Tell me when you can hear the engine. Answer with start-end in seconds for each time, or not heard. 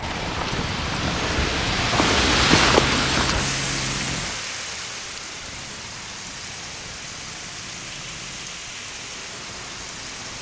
0.0-10.3.